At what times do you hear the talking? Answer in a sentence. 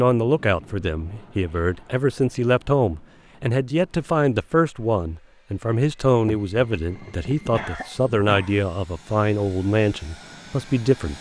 The talking can be heard from 0.0 to 11.1 s.